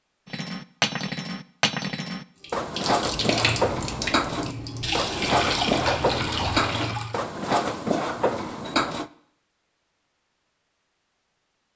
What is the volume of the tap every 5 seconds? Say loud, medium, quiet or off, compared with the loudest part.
loud, loud, off.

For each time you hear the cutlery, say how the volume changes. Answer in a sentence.
The cutlery can be heard from 0.2 to 9.1 s, at a steady volume.